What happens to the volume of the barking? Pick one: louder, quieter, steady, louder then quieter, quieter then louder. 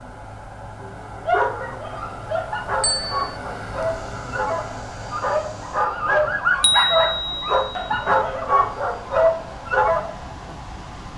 louder.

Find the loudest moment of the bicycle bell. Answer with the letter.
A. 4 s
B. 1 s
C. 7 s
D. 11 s
C.